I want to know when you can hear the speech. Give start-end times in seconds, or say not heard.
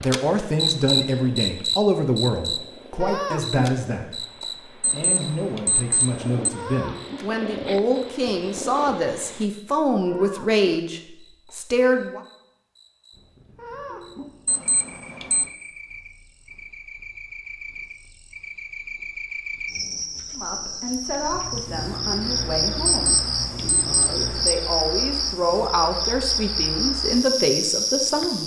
0.0-12.2, 20.3-28.4.